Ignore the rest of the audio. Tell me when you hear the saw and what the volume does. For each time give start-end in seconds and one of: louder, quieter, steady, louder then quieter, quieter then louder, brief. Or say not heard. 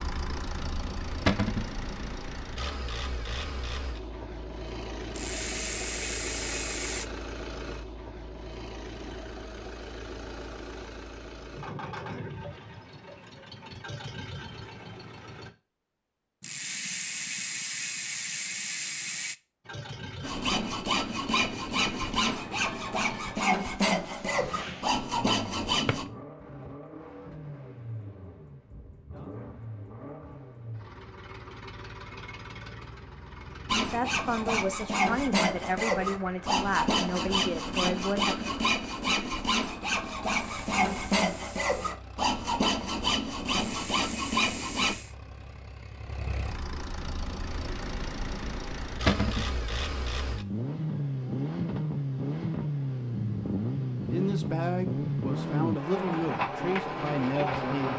20.2-26.1 steady
33.6-45.0 steady.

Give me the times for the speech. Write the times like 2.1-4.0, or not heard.
33.9-38.5, 54.0-57.9.